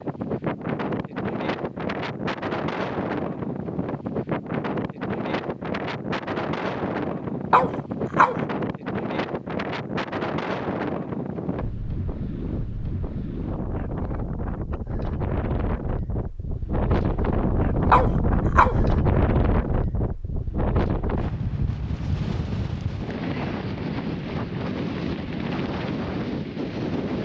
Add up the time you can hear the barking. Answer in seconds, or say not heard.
2 s.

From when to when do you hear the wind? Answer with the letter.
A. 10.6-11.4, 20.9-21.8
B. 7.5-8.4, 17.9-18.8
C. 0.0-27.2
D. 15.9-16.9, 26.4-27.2
C.